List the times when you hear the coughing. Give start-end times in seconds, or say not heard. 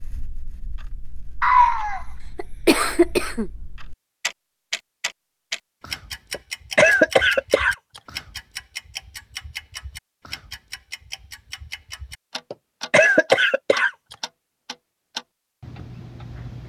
1.4-3.5, 6.3-7.8, 12.5-13.9.